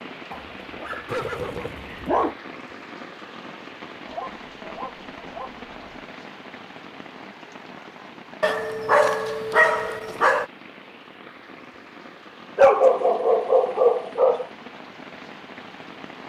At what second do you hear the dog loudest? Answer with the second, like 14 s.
13 s.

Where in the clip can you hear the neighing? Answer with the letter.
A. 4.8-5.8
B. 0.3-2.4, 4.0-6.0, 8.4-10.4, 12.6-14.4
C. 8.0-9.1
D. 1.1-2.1
D.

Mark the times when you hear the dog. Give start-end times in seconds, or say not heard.
0.3-2.4, 4.0-6.0, 8.4-10.4, 12.6-14.4.